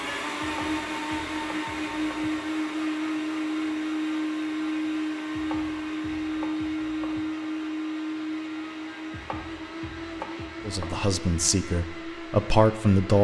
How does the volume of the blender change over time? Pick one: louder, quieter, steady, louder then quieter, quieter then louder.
quieter.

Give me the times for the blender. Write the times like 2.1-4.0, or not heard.
0.0-13.1.